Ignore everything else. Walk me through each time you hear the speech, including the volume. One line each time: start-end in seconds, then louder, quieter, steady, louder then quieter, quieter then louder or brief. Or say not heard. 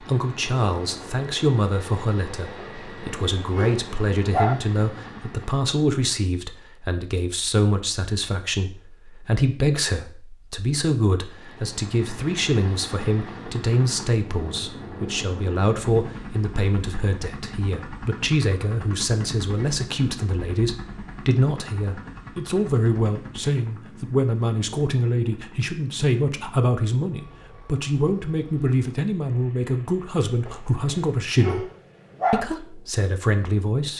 0.0-31.7 steady
32.3-33.9 brief.